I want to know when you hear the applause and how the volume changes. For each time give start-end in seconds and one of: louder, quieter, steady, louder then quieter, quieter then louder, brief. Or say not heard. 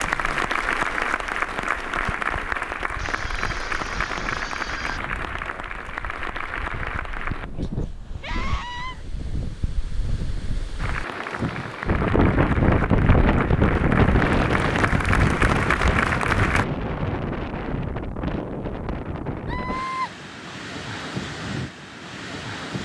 0.0-7.5 quieter
10.8-16.6 louder.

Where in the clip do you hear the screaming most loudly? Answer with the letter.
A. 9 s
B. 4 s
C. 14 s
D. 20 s
D.